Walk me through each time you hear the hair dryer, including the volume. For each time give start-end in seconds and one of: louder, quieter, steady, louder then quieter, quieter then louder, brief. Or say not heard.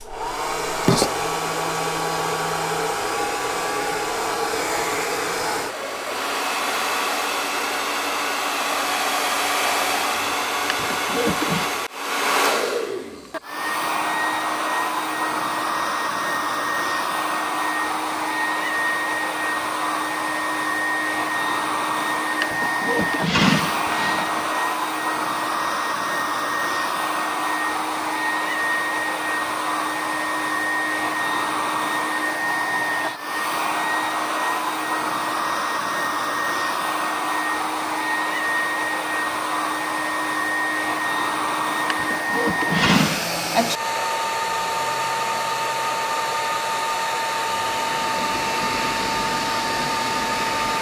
0.0-50.7 steady.